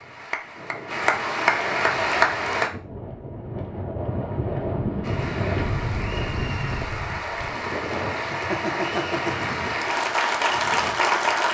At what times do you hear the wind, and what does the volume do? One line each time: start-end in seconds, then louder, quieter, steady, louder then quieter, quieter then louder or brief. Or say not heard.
0.0-11.2 louder then quieter.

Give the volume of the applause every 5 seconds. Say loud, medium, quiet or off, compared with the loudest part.
loud, medium, loud.